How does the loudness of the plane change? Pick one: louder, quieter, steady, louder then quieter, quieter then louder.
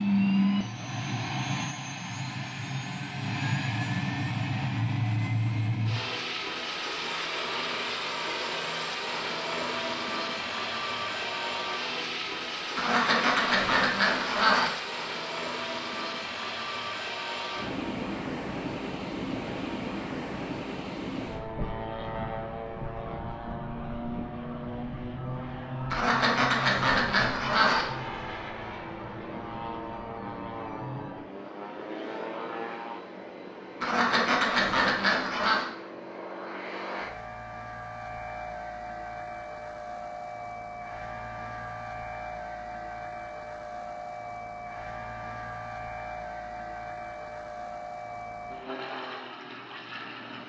quieter.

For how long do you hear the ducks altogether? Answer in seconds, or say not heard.
6 s.